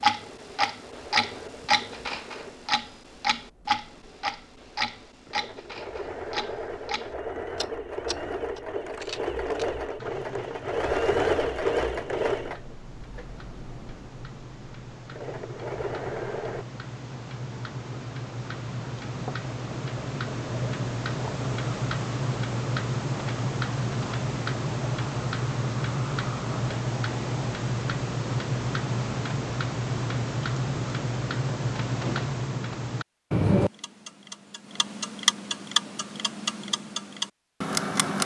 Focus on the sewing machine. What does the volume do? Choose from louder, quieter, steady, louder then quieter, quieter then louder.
louder then quieter.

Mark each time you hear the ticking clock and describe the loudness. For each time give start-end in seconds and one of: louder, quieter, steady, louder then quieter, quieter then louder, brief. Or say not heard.
0.0-38.2 quieter then louder.